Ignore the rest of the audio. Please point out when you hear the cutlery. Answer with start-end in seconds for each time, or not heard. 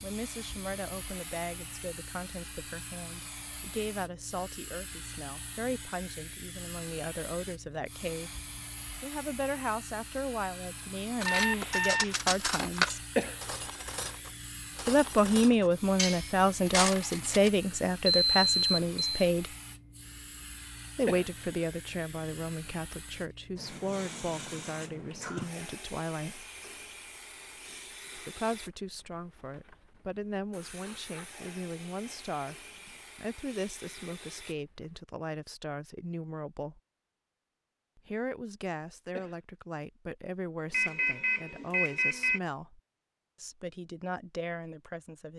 11.2-17.5.